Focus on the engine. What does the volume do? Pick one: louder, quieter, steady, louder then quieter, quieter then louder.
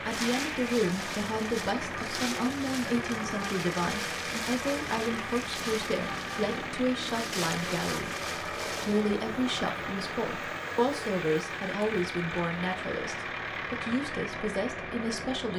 steady.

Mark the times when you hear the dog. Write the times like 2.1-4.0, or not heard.
not heard.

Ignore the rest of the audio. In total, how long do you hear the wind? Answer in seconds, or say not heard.
9 s.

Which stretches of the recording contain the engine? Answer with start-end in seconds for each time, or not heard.
0.0-15.5.